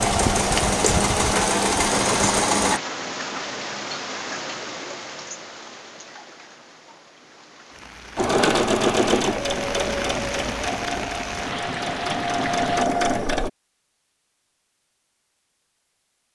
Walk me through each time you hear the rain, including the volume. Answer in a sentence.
You can hear the rain from 0.0 to 12.8 s, getting quieter then louder.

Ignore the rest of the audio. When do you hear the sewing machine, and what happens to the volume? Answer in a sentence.
You can hear the sewing machine briefly from 0.0 to 2.8 s; and from 8.2 to 13.5 s, getting quieter then louder.